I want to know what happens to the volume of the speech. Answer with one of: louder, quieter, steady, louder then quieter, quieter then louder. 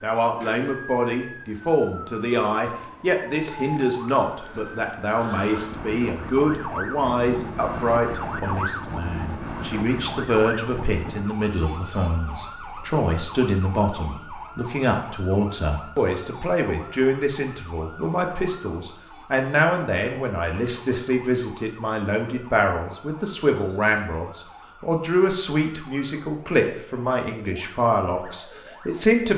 steady.